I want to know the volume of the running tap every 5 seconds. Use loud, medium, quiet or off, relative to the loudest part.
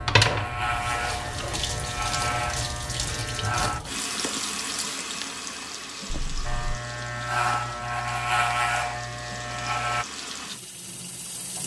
loud, medium, medium.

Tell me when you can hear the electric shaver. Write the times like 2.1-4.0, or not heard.
0.0-3.8, 6.5-10.1.